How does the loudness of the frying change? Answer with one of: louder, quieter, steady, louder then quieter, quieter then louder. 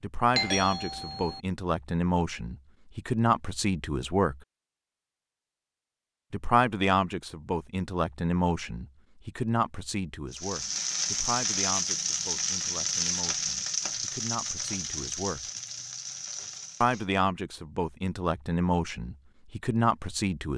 quieter.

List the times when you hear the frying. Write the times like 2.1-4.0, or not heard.
10.3-17.1.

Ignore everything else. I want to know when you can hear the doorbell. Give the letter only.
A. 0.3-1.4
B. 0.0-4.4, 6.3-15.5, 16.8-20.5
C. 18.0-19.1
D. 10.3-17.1
A.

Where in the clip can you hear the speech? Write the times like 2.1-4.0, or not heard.
0.0-4.4, 6.3-15.5, 16.8-20.5.